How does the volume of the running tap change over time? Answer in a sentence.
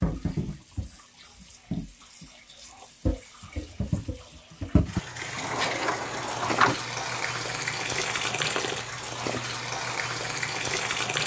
The loudness of the running tap goes up.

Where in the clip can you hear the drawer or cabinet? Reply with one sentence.
You can hear the drawer or cabinet from 5.3 to 6.8 s.